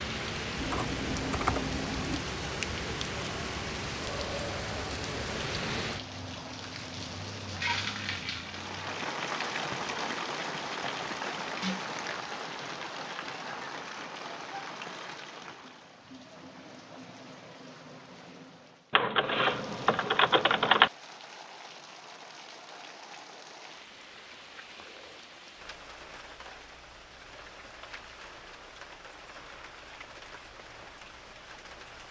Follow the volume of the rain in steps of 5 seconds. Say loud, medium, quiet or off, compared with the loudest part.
loud, loud, loud, quiet, quiet, quiet, quiet.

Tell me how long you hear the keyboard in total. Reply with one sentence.
The keyboard can be heard for 4 seconds in total.